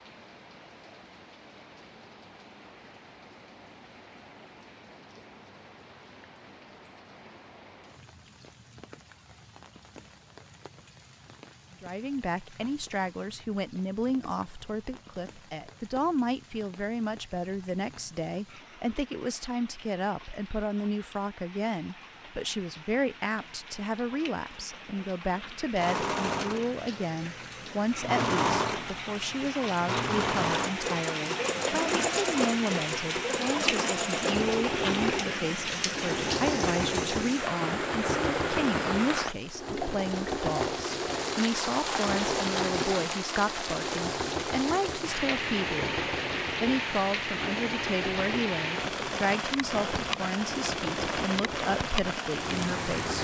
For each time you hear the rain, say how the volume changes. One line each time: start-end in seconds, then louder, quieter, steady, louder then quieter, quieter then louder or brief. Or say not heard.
0.0-53.1 louder.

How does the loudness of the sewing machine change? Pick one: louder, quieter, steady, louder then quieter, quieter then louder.
quieter.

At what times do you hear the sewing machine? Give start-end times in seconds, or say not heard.
25.8-53.1.